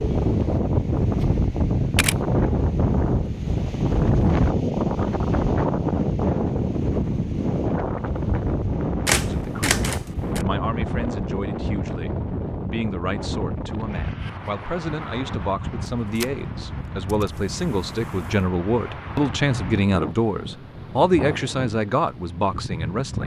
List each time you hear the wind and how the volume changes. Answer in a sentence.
You can hear the wind from 0.0 to 23.2 s, getting quieter.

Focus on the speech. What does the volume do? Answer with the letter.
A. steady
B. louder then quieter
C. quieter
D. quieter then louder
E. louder
E.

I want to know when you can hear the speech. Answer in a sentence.
You can hear the speech from 9.2 to 23.2 s.